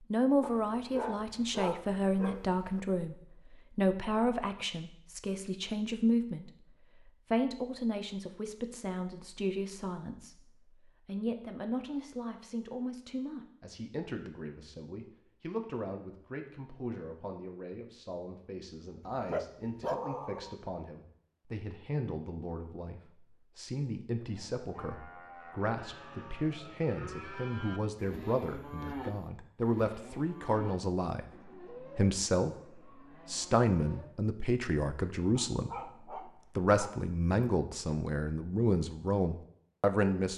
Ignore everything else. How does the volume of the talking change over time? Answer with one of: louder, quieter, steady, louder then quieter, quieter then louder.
quieter then louder.